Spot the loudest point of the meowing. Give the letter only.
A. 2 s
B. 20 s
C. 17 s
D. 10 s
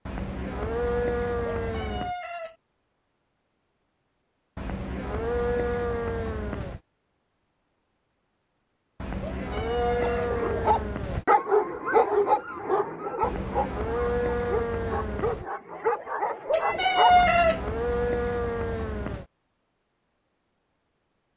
C.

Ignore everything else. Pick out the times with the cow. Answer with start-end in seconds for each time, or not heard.
0.1-2.1, 4.5-6.8, 9.0-11.2, 13.2-15.4, 17.1-19.2.